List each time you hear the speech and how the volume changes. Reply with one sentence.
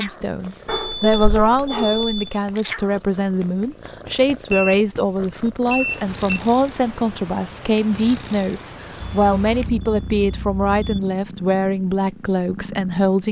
You can hear the speech from 0.0 to 13.2 s, at a steady volume.